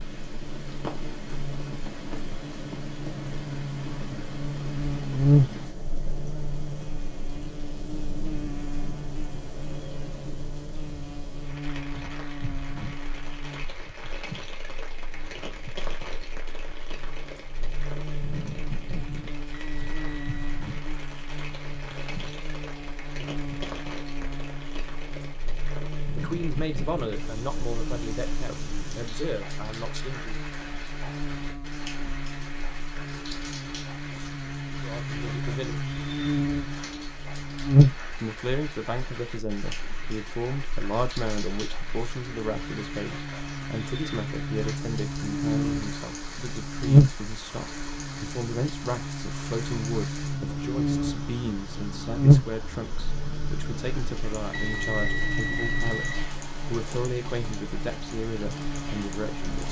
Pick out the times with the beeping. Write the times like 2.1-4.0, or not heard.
19.5-20.5, 54.5-56.3.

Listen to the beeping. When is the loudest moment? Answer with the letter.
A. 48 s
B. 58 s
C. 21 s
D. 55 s
D.